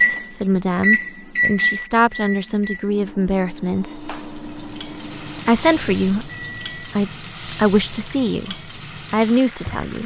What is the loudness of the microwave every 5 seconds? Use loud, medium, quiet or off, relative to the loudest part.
loud, quiet.